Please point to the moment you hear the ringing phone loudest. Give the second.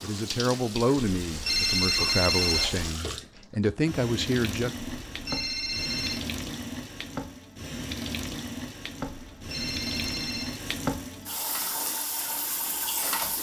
2 s.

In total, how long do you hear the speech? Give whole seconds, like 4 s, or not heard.
5 s.